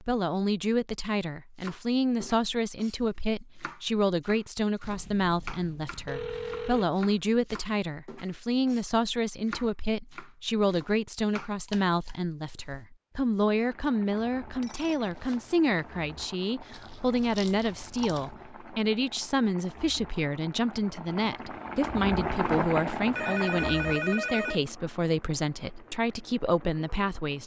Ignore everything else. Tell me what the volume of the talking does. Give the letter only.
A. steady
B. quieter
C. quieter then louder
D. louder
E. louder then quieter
A.